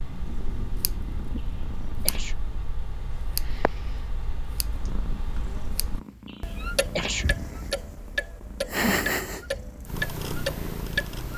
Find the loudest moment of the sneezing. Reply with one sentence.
The volume of the sneezing peaks at 7 seconds.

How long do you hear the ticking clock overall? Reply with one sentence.
You can hear the ticking clock for 11 seconds altogether.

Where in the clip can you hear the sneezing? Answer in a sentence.
The sneezing can be heard from 1.4 to 2.4 s and from 6.2 to 7.2 s.